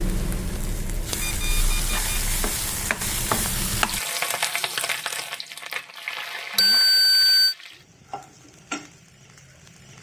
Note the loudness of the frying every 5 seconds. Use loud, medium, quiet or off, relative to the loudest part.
loud, medium.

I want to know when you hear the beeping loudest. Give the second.
7 s.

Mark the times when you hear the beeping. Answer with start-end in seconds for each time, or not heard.
1.1-2.3, 6.5-7.5.